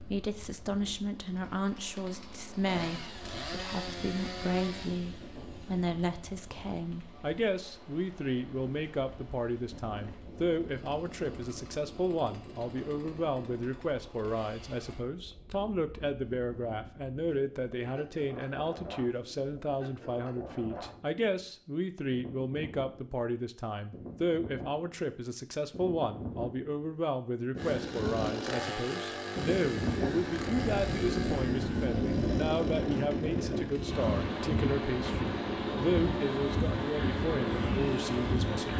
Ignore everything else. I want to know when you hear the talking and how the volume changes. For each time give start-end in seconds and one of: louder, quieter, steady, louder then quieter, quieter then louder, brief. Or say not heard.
0.0-38.7 steady.